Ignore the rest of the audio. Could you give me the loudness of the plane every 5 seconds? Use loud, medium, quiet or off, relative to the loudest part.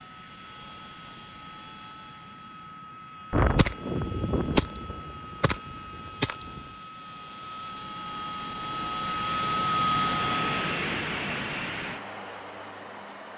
quiet, loud, loud.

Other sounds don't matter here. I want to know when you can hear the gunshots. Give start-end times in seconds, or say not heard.
3.3-6.7.